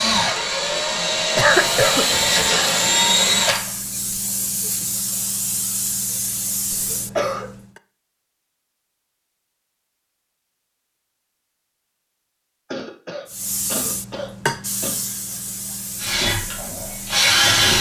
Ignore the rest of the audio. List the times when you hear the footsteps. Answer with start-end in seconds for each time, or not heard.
not heard.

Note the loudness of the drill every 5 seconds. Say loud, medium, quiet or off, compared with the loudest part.
loud, off, off, loud.